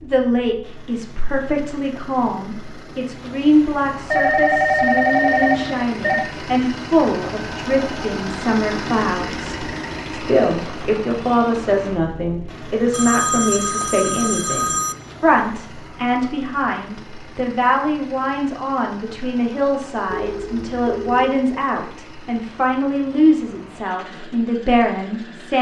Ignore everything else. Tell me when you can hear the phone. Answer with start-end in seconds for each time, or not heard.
4.1-6.3, 12.9-14.9, 20.1-21.4.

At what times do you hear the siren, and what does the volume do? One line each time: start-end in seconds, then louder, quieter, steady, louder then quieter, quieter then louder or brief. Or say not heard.
not heard.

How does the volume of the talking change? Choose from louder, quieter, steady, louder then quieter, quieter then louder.
steady.